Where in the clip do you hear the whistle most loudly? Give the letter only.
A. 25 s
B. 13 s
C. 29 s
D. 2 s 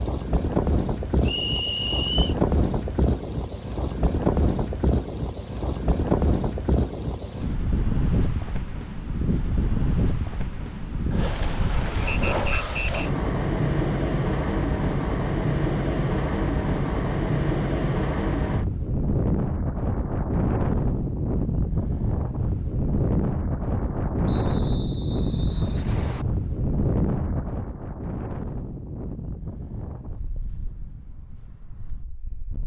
D.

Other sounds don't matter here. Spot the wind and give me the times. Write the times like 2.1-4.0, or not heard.
0.0-32.6.